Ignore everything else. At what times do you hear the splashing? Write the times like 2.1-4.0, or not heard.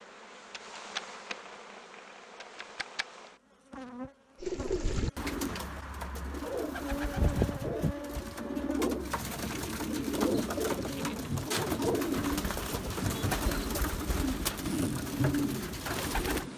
not heard.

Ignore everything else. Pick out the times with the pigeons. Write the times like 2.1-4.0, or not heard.
4.4-16.4.